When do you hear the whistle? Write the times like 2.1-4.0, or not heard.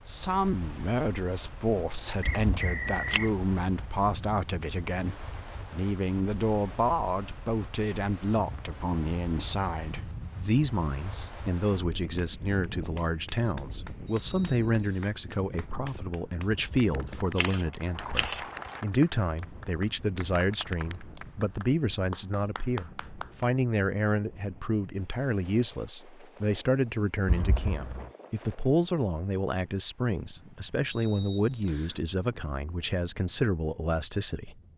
2.2-3.4, 14.1-15.2, 30.9-32.0.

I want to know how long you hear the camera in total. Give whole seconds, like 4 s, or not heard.
4 s.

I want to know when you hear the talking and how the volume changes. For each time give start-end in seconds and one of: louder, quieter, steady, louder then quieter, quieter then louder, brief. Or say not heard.
0.1-34.5 steady.